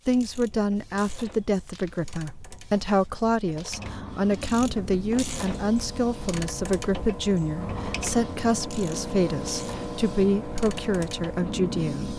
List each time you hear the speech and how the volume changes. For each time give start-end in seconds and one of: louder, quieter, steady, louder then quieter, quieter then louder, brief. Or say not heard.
0.1-12.1 steady.